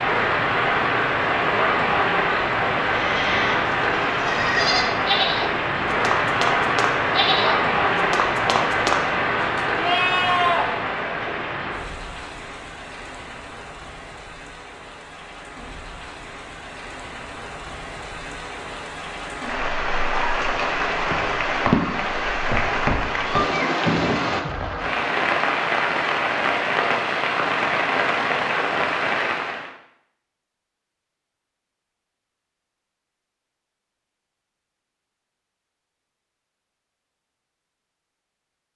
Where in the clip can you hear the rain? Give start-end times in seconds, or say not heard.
0.0-29.7.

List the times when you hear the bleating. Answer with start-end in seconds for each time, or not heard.
2.9-10.7.